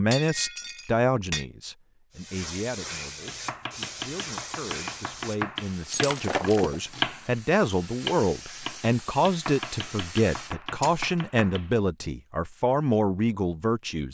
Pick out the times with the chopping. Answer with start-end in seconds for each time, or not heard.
3.2-12.1.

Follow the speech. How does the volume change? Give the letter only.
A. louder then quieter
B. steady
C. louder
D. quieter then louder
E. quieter
D.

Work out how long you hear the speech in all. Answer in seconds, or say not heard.
14 s.